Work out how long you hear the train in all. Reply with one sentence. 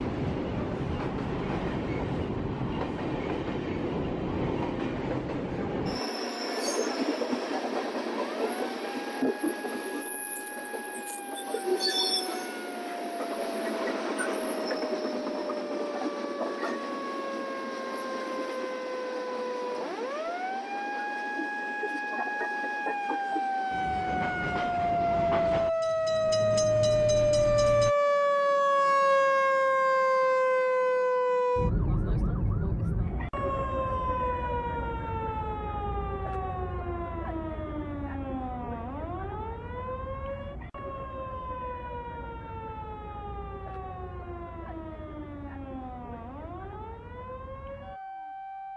You can hear the train for 28 seconds altogether.